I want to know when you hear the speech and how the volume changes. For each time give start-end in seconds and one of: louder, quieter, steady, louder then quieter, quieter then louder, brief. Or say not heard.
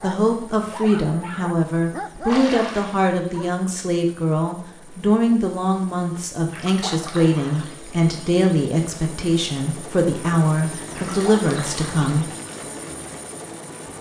0.0-12.3 steady.